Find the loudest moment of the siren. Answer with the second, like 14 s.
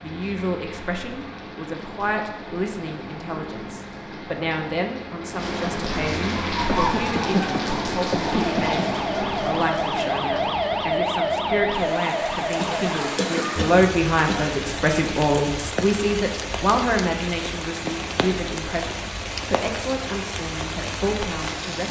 11 s.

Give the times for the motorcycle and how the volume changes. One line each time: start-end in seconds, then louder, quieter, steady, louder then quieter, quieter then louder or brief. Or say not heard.
not heard.